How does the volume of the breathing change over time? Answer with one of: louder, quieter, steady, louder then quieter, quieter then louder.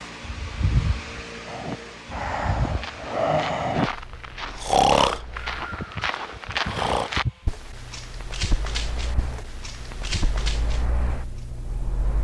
louder then quieter.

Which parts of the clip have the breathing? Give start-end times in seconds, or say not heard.
1.4-7.1.